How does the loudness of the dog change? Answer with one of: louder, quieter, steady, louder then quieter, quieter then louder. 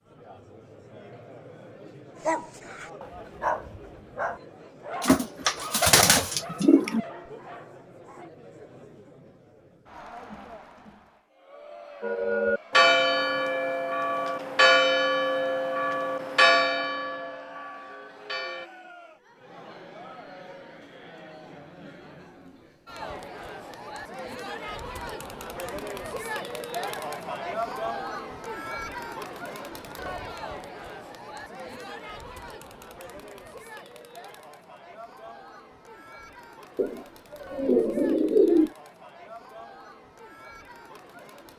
quieter.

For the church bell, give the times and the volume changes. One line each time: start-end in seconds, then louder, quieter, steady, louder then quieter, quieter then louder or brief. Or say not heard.
12.0-18.7 quieter.